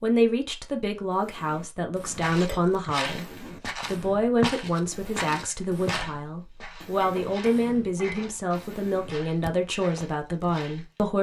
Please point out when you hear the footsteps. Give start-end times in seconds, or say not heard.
2.2-11.0.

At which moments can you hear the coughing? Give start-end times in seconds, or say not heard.
not heard.